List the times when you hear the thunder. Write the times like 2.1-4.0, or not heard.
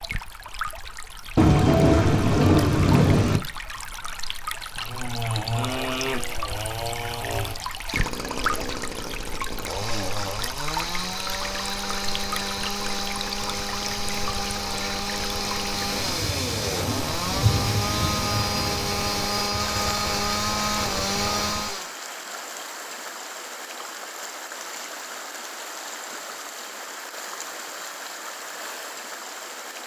1.4-3.4, 16.1-19.1.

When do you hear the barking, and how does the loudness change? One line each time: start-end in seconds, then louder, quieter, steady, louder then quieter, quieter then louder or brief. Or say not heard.
not heard.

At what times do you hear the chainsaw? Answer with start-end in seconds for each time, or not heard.
4.8-21.9.